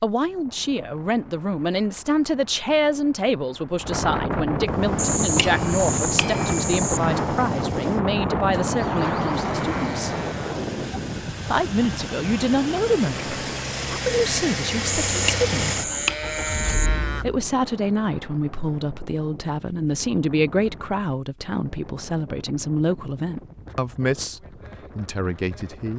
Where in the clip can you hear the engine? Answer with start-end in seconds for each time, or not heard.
4.6-17.5.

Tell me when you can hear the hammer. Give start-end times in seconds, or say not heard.
5.0-7.0, 14.8-16.9.